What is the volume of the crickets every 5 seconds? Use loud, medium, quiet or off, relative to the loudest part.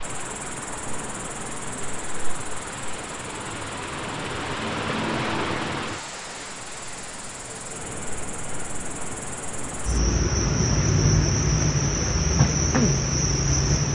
quiet, quiet, loud.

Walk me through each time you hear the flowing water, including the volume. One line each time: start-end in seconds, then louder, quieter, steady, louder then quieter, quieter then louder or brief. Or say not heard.
0.0-13.8 louder then quieter.